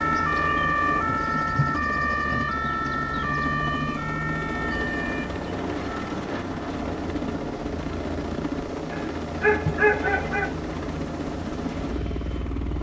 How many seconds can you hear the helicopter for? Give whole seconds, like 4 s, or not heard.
13 s.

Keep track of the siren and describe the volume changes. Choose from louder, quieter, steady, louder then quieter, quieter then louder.
quieter.